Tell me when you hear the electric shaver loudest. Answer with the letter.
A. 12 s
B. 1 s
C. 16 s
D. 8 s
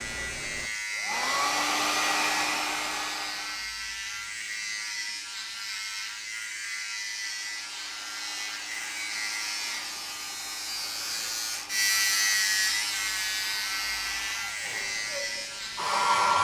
A.